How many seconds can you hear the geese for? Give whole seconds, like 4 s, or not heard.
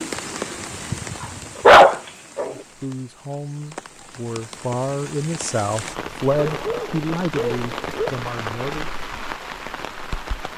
not heard.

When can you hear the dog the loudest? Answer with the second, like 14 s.
2 s.